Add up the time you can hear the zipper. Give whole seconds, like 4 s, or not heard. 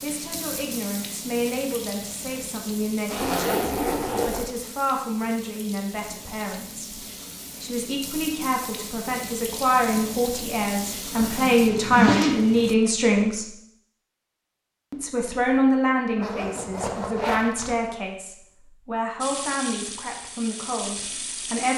4 s.